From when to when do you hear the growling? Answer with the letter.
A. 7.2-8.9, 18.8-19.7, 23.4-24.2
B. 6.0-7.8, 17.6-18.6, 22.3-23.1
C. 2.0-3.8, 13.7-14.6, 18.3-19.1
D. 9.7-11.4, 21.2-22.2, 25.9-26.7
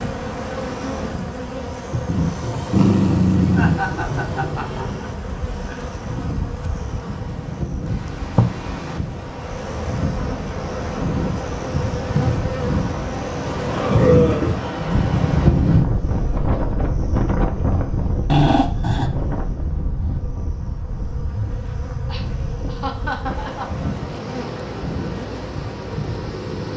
C.